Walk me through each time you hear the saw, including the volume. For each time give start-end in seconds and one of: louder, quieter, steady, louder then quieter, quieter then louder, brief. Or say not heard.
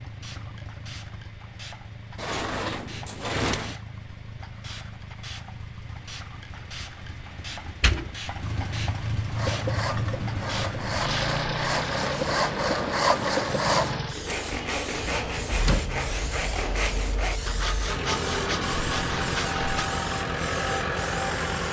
9.3-19.9 louder then quieter.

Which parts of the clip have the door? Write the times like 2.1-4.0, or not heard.
2.1-3.8, 7.7-8.8, 15.1-15.9.